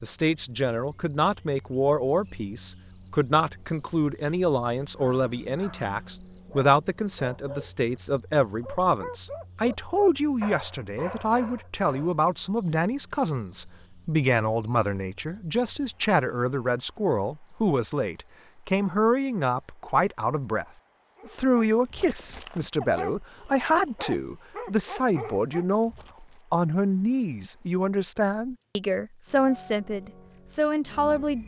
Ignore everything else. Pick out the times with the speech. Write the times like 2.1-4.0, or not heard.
0.0-20.6, 21.2-31.4.